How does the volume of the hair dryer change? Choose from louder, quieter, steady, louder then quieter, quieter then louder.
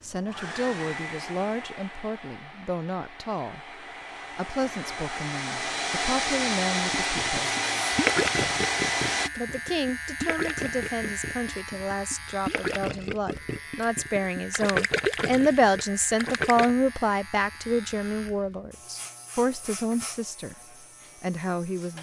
quieter then louder.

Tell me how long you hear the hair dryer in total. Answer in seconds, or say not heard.
9 s.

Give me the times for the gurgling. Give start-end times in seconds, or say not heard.
6.9-16.8.